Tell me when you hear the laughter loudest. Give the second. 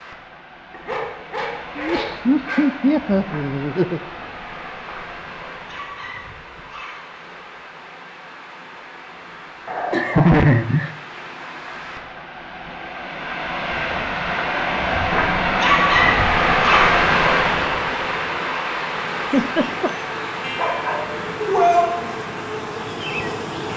10 s.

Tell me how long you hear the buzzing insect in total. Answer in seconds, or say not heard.
5 s.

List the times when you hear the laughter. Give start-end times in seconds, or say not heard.
1.8-4.0, 9.9-10.9, 19.2-19.9.